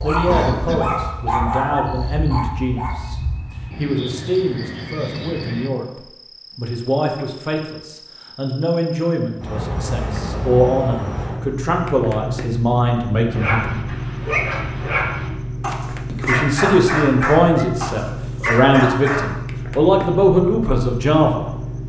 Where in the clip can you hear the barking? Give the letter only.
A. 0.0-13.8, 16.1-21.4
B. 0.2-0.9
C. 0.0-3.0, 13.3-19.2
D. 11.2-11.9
C.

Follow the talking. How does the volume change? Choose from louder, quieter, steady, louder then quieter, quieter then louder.
louder.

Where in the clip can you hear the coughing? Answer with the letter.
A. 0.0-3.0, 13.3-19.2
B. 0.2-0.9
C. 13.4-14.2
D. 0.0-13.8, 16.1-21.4
B.